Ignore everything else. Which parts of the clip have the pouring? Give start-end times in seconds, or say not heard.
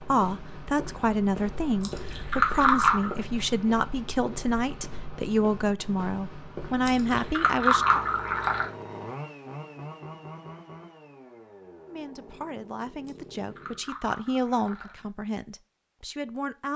1.8-3.1, 6.8-8.7, 13.1-15.1.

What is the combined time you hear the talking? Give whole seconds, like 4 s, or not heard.
13 s.